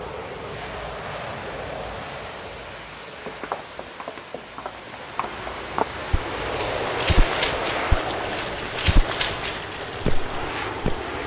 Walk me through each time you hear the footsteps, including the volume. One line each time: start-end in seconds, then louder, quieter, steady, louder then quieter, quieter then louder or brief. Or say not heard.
3.2-11.0 louder.